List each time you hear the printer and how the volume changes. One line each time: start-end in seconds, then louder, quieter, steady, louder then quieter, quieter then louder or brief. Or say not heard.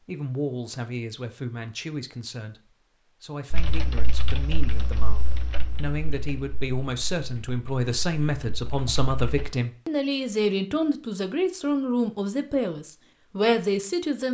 not heard.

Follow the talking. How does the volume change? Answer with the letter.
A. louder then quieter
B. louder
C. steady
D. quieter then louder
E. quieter
B.